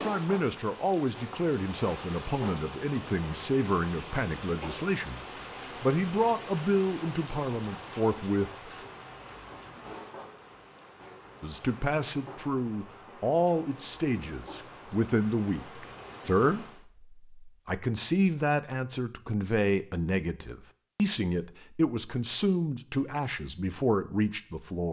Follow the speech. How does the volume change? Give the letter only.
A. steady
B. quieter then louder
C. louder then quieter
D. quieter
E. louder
A.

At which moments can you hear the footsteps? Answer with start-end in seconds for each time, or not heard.
not heard.